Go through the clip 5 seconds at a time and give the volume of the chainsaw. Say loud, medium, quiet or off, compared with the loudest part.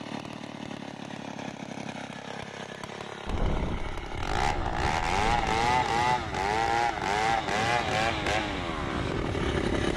medium, loud.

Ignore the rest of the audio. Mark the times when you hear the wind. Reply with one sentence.
You can hear the wind from 3.2 to 9.9 s.